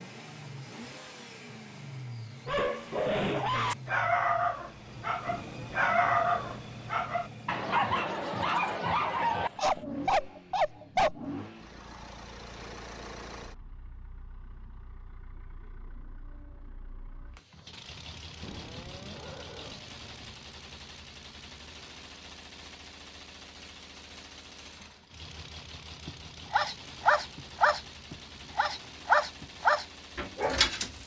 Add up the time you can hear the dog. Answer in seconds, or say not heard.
14 s.